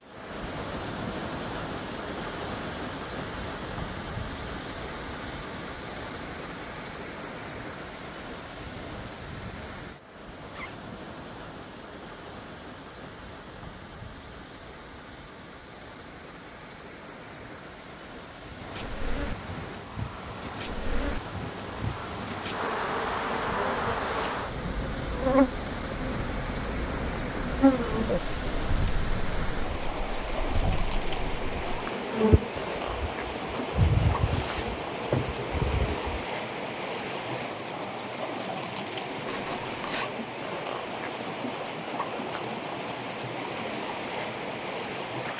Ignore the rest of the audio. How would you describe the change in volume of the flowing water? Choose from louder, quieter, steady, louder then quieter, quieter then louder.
quieter then louder.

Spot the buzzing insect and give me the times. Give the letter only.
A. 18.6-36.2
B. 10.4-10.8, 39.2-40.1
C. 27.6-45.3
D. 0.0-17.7
A.